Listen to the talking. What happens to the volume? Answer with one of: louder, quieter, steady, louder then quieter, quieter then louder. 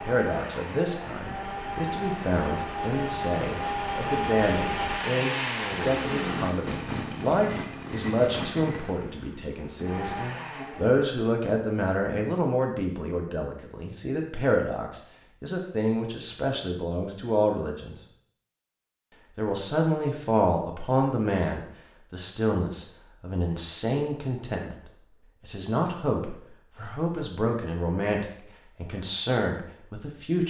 steady.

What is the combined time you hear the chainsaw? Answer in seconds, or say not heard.
11 s.